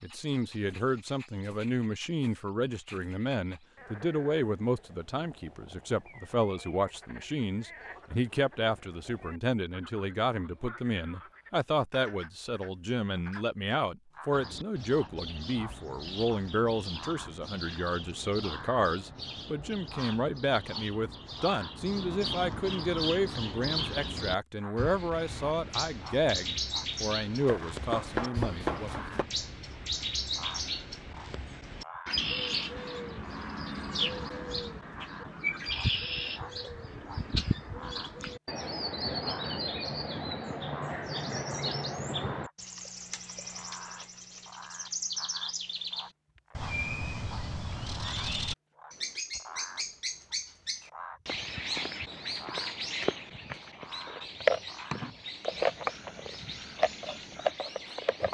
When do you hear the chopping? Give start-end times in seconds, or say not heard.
27.4-29.2.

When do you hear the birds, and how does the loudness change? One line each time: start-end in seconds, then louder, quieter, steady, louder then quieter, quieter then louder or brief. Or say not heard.
14.3-58.2 louder.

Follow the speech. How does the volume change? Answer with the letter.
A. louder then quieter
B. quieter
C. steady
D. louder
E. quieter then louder
C.